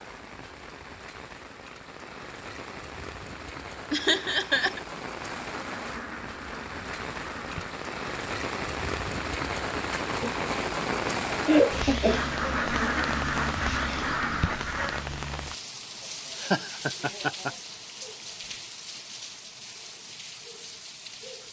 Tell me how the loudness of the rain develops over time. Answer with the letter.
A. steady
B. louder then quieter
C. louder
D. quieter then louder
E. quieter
B.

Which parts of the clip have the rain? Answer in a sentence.
You can hear the rain from 0.0 to 21.4 s.